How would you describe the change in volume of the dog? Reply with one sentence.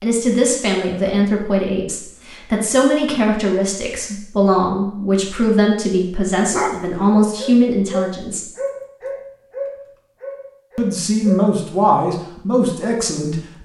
The loudness of the dog goes up, then down.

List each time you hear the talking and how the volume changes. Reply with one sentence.
You can hear the talking from 0.0 to 8.5 s, at a steady volume; and briefly from 10.8 to 13.6 s.